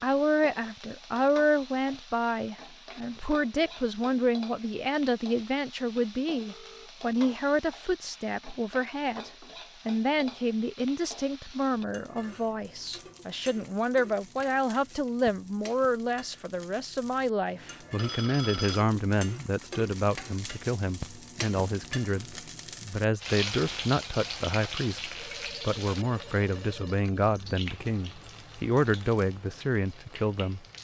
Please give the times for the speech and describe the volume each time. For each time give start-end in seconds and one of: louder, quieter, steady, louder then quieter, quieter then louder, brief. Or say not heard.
0.0-30.6 steady.